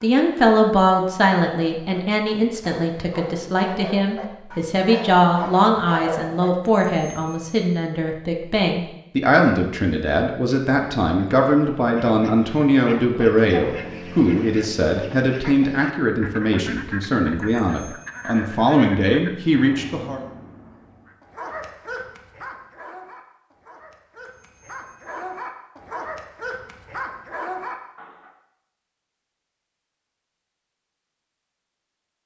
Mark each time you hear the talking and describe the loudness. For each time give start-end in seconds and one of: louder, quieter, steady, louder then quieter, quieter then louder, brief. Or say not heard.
0.0-20.2 steady.